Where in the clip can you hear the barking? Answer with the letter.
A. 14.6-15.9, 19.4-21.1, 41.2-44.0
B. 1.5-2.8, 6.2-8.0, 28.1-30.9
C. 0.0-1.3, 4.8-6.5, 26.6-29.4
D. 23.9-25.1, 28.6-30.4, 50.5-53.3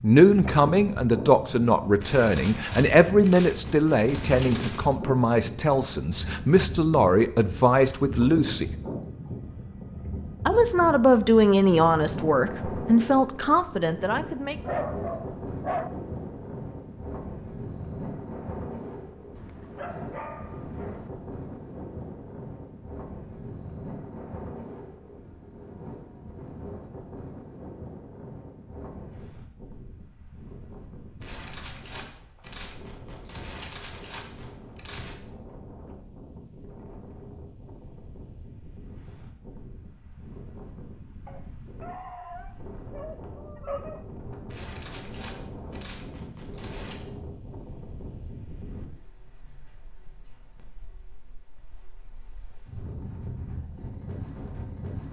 A.